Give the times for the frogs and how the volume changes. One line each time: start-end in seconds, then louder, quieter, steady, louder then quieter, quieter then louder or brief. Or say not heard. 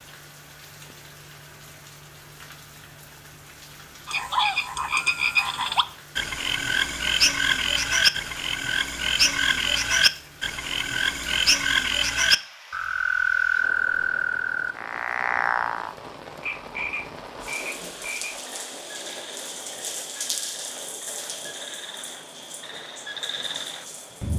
4.0-24.3 quieter.